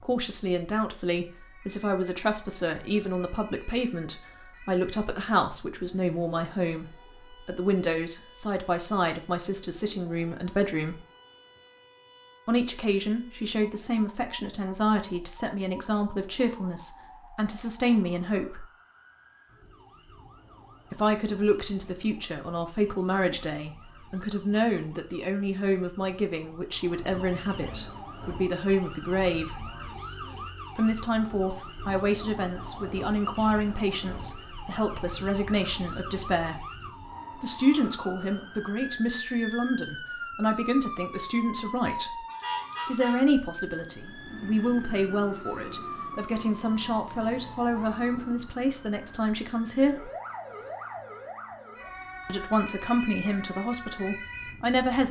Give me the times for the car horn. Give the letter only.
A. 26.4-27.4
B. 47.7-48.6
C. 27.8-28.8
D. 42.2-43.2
D.